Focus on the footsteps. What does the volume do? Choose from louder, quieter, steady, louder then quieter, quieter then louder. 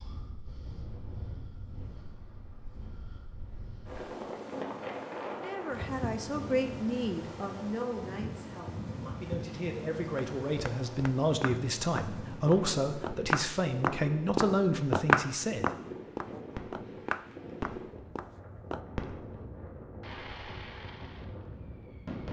louder then quieter.